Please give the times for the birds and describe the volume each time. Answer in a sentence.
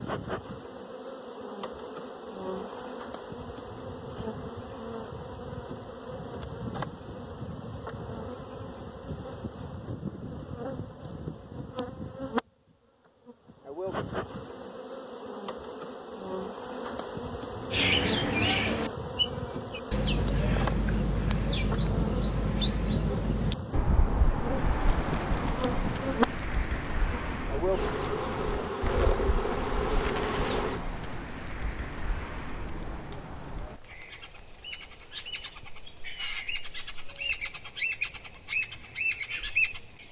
The birds can be heard from 17.7 to 40.0 s, getting quieter then louder.